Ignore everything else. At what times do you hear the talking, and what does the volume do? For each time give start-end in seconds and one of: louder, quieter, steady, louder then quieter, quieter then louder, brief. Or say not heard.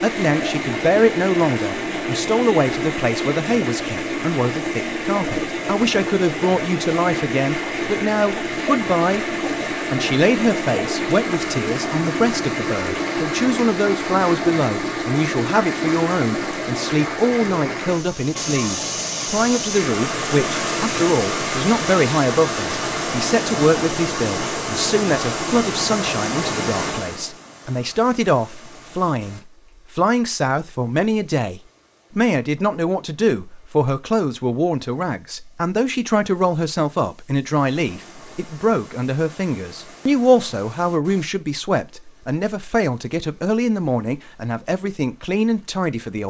0.0-46.2 steady.